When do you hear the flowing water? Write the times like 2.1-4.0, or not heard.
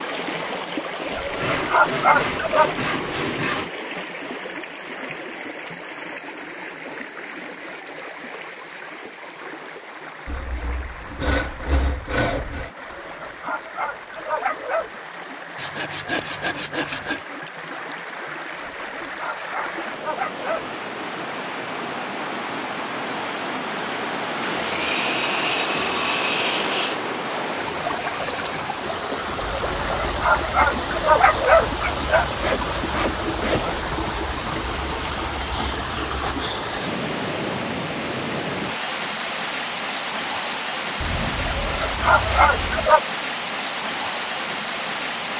0.0-45.3.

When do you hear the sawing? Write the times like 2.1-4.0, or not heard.
1.4-3.7, 10.2-12.7, 15.6-17.2, 24.4-27.0, 32.4-33.9, 41.0-43.0.